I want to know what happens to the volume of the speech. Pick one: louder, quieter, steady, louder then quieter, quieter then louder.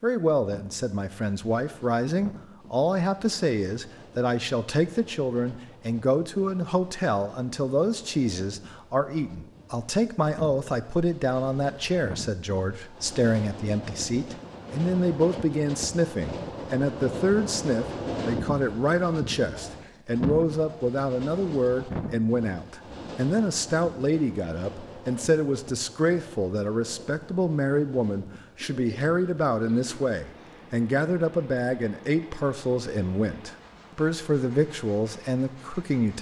steady.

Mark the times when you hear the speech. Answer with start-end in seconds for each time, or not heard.
0.0-36.1.